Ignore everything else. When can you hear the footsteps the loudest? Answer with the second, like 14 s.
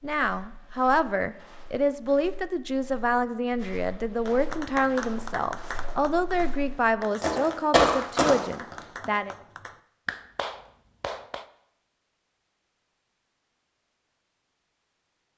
8 s.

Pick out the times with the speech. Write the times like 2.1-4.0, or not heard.
0.0-9.3.